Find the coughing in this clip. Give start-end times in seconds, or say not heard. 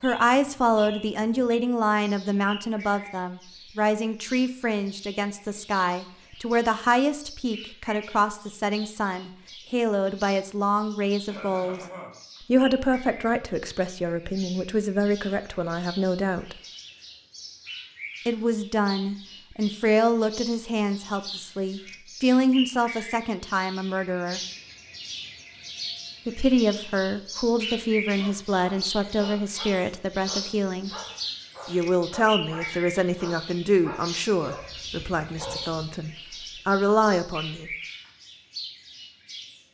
11.2-12.4.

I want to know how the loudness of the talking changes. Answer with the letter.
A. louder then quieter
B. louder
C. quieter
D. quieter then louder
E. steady
E.